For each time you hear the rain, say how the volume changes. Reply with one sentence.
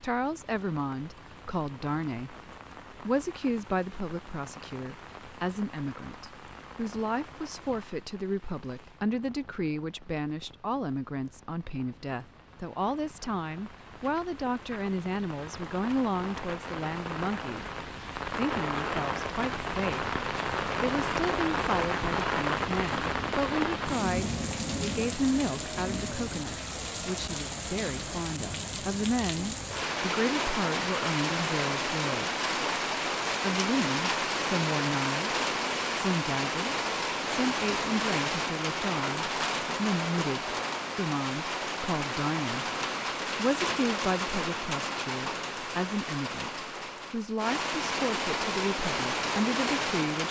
The rain can be heard from 0.0 to 50.2 s, getting louder.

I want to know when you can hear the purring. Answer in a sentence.
You can't hear the purring here.